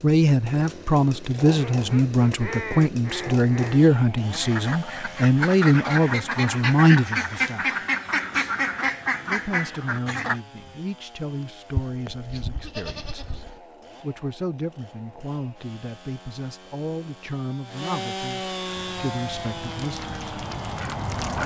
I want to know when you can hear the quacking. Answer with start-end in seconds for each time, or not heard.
1.4-10.4, 18.6-21.4.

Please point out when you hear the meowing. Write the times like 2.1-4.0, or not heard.
not heard.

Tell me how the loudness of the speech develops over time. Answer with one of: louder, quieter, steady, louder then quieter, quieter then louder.
quieter.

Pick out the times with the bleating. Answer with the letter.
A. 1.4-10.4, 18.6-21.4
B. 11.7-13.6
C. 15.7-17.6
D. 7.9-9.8
B.